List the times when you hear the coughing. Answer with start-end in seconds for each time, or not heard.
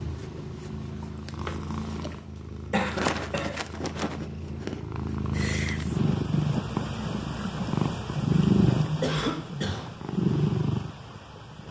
2.7-3.6, 9.0-9.8.